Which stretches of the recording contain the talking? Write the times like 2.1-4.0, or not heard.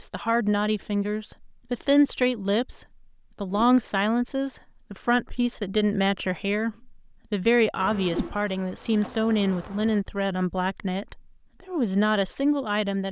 0.0-13.0.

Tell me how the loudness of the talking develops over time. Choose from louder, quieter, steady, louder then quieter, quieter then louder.
steady.